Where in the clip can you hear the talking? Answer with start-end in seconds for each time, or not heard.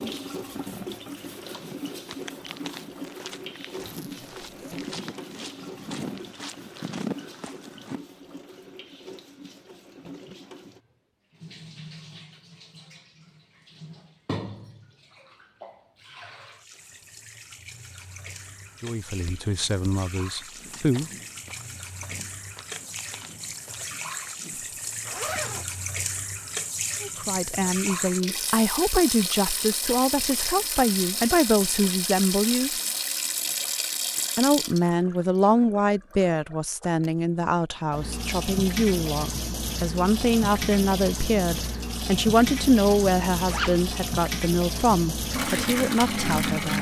18.8-21.1, 27.0-32.7, 34.4-46.7.